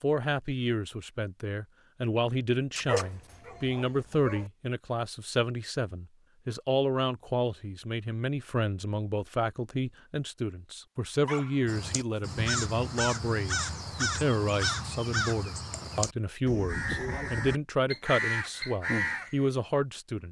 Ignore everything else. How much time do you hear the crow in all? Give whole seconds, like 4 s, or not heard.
8 s.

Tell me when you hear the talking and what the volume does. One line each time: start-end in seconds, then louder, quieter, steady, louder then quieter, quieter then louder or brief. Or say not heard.
0.0-20.2 steady.